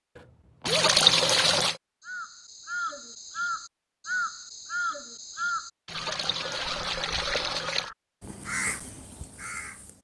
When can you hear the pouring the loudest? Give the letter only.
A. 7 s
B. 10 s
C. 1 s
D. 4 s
C.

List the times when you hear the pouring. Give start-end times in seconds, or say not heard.
0.7-1.8, 5.8-7.9.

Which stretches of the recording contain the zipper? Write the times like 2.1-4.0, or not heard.
0.1-0.9, 6.5-7.0.